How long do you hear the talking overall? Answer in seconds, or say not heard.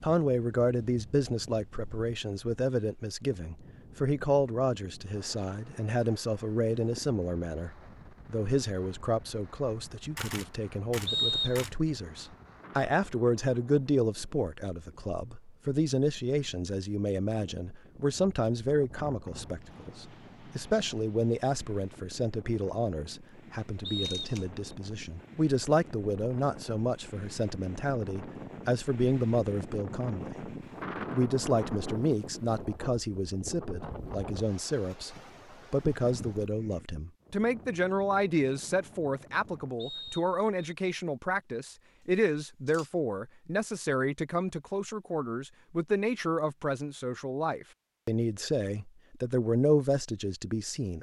50 s.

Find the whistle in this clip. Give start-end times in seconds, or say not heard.
11.1-11.7, 23.9-24.6, 39.8-40.8.